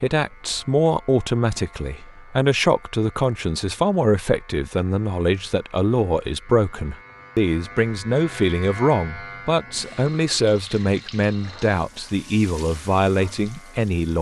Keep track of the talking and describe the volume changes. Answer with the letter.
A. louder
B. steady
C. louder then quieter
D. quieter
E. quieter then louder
B.